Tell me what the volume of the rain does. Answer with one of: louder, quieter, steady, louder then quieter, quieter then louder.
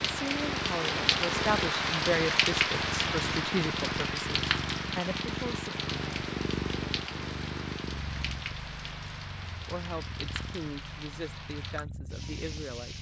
quieter.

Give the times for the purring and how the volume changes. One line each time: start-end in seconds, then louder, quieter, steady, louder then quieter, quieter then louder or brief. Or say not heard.
0.0-12.9 quieter.